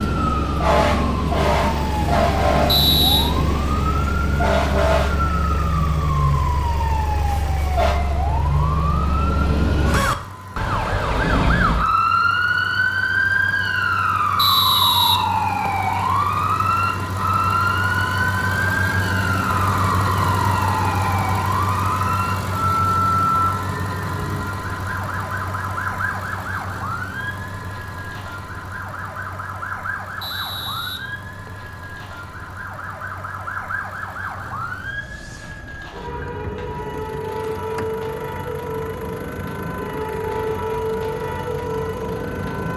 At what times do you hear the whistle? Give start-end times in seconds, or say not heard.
2.6-3.4, 14.3-15.8, 30.2-31.7.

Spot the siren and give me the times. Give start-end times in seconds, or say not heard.
0.0-42.7.